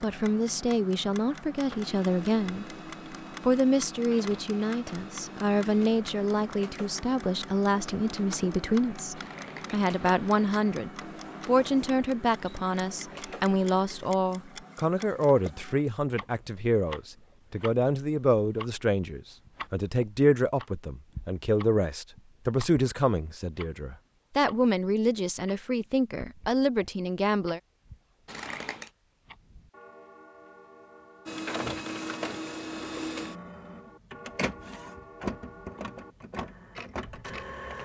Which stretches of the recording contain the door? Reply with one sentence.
The door can't be heard in this clip.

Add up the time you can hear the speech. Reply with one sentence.
The speech can be heard for 27 seconds in total.